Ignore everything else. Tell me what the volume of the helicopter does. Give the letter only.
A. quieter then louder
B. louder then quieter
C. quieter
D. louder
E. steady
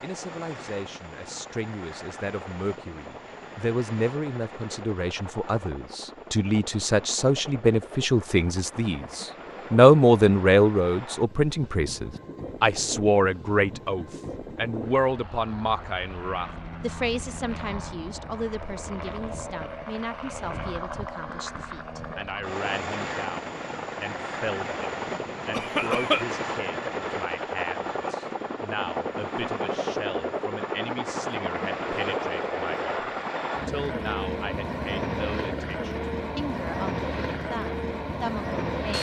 D.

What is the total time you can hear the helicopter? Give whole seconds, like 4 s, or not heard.
39 s.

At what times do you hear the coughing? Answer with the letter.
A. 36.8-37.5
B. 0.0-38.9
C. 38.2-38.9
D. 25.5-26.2
D.